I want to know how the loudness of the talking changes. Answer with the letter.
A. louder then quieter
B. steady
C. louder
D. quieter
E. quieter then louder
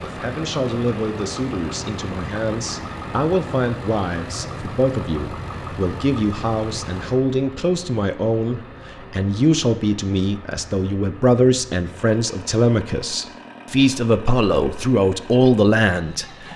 C.